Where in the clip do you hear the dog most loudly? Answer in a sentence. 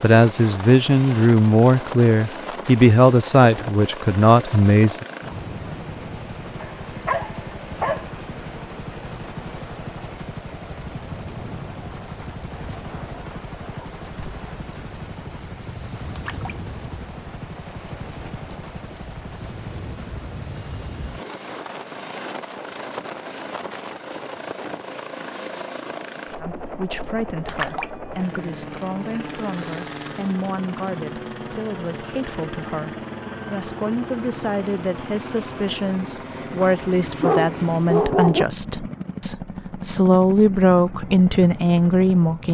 The loudest moment of the dog is at 38 seconds.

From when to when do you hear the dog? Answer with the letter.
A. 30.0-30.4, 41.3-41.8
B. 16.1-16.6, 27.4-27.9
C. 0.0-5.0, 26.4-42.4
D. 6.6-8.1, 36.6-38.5
D.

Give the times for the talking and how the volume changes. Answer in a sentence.
You can hear the talking from 0.0 to 5.0 s, at a steady volume; and from 26.4 to 42.4 s, getting louder.